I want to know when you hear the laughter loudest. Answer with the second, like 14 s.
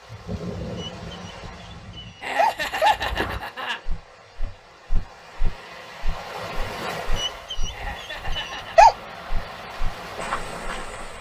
3 s.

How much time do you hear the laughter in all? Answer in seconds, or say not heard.
3 s.